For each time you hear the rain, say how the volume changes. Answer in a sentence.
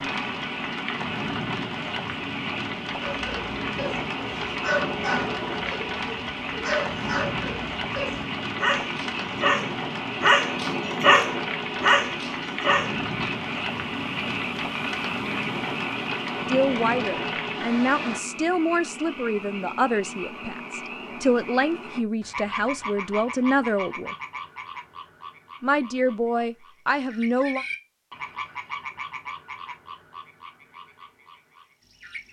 The rain can be heard from 0.0 to 18.2 s, at a steady volume.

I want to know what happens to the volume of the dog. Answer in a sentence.
The volume of the dog goes up.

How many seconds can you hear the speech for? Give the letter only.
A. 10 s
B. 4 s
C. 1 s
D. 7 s
A.